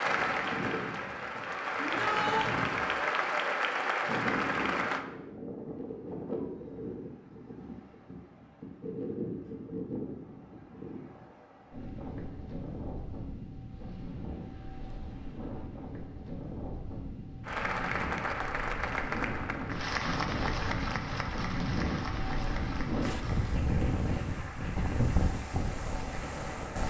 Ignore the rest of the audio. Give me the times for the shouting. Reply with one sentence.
The shouting can be heard from 1.8 to 2.5 s.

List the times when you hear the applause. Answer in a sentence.
You can hear the applause from 0.0 to 5.0 s and from 17.4 to 26.8 s.